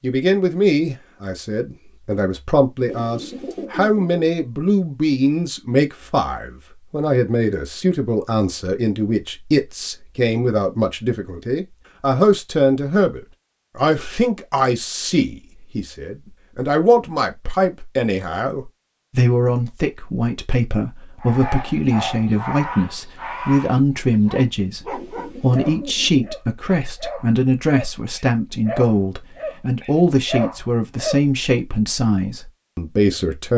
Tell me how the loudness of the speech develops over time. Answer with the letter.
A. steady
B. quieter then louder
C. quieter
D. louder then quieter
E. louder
A.